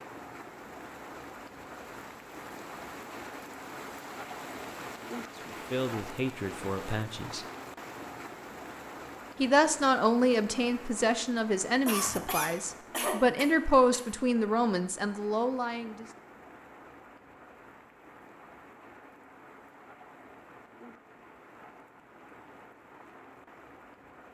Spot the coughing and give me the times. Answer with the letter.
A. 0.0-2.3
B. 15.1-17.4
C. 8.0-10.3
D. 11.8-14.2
D.